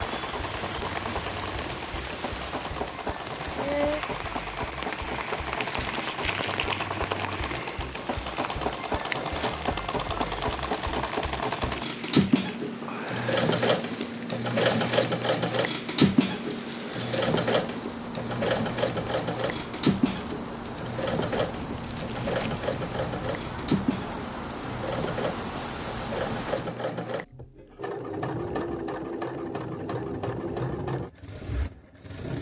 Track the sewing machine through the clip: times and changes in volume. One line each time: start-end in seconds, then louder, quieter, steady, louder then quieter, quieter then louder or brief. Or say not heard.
0.0-32.3 louder then quieter.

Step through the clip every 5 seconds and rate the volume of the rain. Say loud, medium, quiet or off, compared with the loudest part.
loud, loud, medium, medium, loud, loud, off.